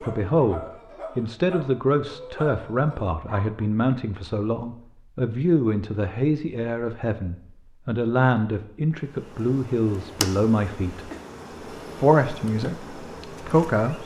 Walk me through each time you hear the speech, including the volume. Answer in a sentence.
The speech can be heard from 0.0 to 11.1 s, at a steady volume; and briefly from 11.9 to 14.0 s.